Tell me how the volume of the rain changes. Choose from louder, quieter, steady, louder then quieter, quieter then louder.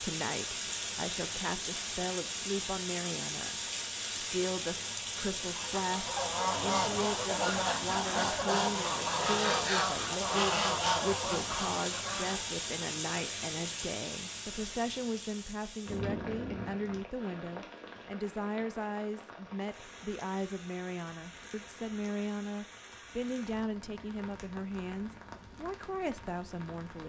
quieter.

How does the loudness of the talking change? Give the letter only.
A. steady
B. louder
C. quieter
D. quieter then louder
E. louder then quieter
A.